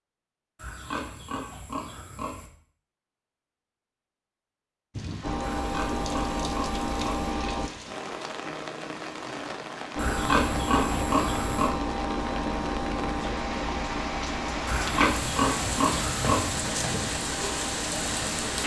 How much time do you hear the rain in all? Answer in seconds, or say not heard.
14 s.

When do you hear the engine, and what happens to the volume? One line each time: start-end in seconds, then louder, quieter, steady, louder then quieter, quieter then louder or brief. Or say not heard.
5.2-7.7 brief
9.9-18.6 quieter.